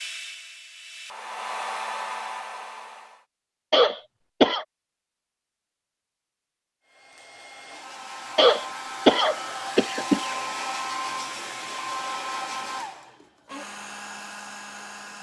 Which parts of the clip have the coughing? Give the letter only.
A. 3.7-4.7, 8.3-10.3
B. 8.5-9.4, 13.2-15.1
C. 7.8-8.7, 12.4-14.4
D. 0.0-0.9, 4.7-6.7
A.